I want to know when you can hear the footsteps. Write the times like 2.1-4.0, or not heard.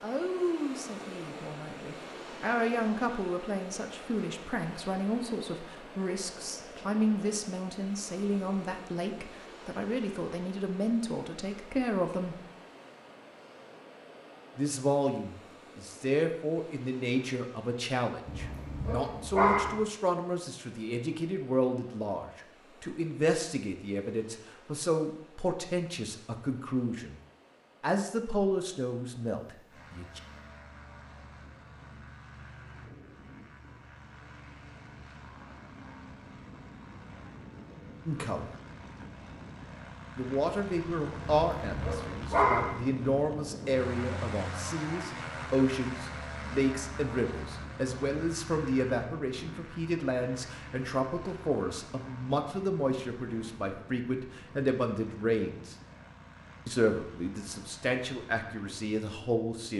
not heard.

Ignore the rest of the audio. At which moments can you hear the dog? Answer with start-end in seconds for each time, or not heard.
18.2-19.8, 41.2-42.8.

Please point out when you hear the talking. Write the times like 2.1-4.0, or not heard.
0.0-12.4, 14.6-27.2, 27.8-30.2, 38.0-38.5, 40.1-55.8, 56.6-59.7.